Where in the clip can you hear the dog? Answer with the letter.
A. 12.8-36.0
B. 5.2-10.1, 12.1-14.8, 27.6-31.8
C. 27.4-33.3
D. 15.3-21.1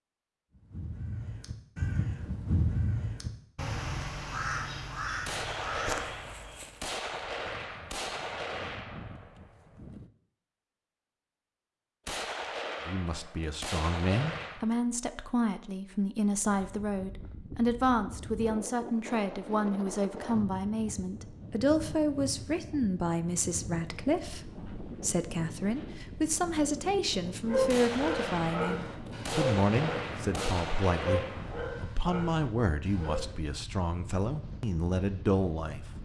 C.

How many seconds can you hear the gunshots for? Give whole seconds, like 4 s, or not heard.
12 s.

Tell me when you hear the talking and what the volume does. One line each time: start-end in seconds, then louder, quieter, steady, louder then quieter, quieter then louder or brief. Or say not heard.
12.8-36.0 steady.